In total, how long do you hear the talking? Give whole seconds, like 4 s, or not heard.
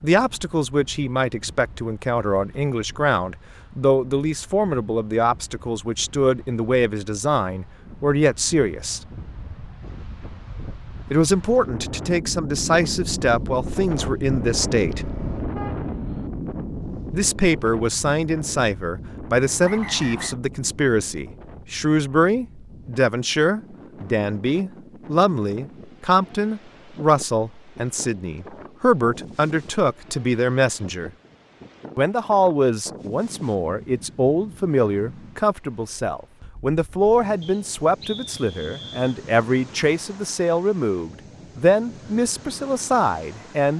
39 s.